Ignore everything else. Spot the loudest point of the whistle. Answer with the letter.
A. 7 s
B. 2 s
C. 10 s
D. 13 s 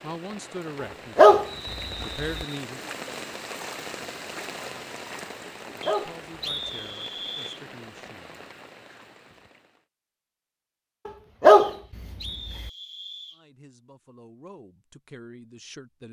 A.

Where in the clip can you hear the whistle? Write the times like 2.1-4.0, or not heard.
1.4-2.6, 5.8-7.6, 11.6-13.4.